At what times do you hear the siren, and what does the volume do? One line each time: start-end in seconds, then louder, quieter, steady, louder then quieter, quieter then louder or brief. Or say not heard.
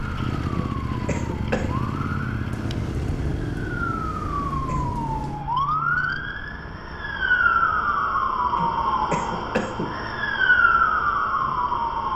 0.0-12.1 louder.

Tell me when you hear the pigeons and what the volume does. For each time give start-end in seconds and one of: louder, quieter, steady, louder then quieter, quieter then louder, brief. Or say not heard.
not heard.